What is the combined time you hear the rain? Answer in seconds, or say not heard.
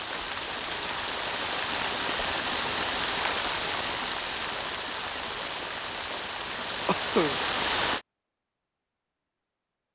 8 s.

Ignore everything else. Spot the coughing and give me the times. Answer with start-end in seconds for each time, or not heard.
6.8-7.4.